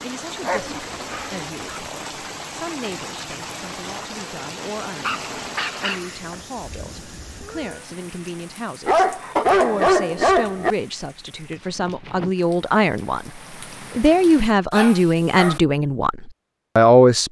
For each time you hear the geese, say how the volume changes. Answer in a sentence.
The geese can't be heard in this clip.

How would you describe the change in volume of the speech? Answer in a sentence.
The volume of the speech goes up.